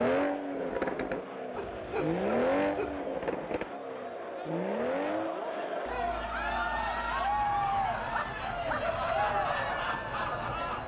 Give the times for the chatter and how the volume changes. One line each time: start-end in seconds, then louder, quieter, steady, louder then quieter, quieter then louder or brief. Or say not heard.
0.1-10.8 louder.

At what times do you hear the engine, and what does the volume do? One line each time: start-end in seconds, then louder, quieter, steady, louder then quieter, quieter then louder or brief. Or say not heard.
0.0-10.8 quieter.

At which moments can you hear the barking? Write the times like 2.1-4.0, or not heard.
1.6-3.0, 8.1-8.9.